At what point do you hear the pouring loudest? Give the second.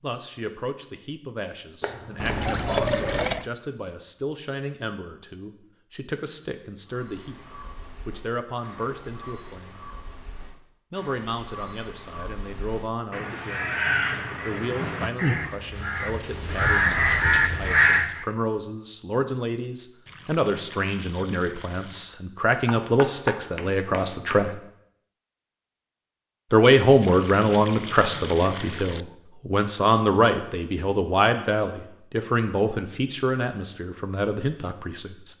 3 s.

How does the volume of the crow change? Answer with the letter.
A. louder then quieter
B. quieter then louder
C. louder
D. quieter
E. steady
C.